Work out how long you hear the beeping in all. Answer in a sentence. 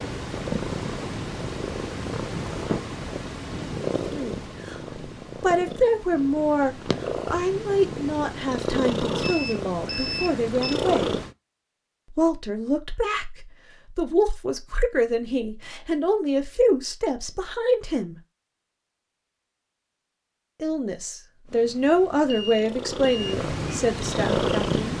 You can hear the beeping for 3 seconds altogether.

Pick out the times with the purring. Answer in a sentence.
The purring can be heard from 0.0 to 11.3 s and from 21.4 to 24.9 s.